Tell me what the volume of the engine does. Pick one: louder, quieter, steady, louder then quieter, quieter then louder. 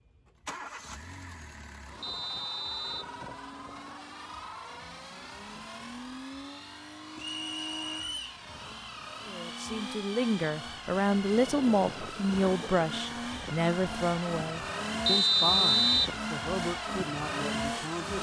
louder.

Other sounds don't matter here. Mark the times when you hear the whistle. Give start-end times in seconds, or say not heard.
2.0-3.1, 7.2-8.3, 15.1-16.1.